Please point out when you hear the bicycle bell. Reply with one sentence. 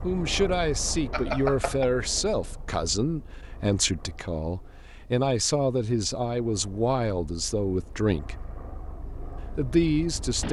You can hear the bicycle bell from 1.1 to 1.9 s.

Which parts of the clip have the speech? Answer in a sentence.
The speech can be heard from 0.0 to 8.4 s and from 9.6 to 10.4 s.